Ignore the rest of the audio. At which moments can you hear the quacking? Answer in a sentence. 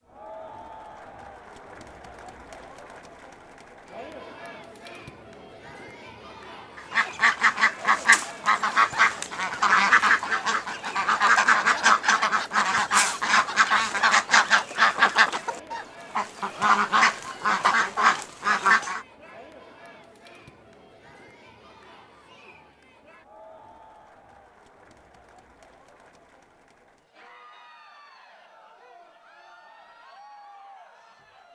The quacking can be heard from 6.8 to 19.1 s.